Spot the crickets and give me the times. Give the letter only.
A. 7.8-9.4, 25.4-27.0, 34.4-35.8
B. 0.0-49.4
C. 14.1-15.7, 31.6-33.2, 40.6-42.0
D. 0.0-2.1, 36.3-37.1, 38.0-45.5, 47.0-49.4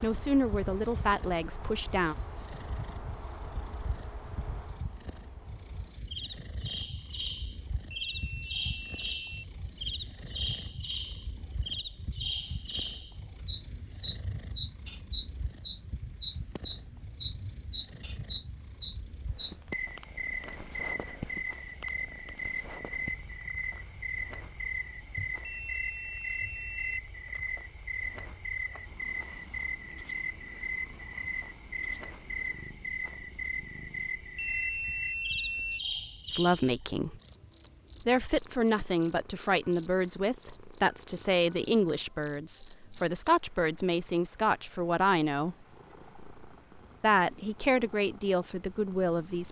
B.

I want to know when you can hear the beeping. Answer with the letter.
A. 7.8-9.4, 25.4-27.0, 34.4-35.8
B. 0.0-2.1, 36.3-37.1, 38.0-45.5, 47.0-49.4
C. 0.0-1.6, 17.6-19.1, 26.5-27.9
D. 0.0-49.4
A.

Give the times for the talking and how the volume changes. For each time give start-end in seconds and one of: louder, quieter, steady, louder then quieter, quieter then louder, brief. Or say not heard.
0.0-2.1 brief
36.3-37.1 brief
38.0-45.5 steady
47.0-49.4 brief.